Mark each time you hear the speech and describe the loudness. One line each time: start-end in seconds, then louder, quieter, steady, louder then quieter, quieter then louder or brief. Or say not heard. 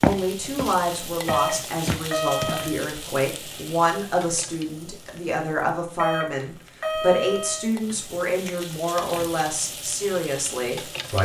0.0-11.1 steady.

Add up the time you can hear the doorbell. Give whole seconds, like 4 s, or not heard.
3 s.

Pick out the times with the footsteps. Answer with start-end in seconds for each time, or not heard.
0.0-2.5.